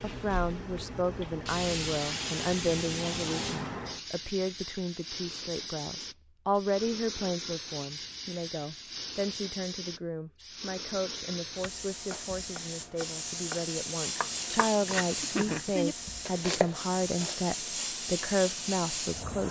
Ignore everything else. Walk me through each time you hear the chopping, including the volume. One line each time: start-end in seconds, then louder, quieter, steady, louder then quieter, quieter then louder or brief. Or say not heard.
11.4-17.4 louder.